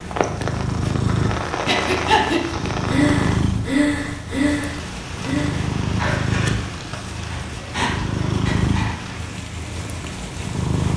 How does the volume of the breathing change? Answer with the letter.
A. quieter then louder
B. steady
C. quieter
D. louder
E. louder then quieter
C.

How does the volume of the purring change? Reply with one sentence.
The volume of the purring stays about the same.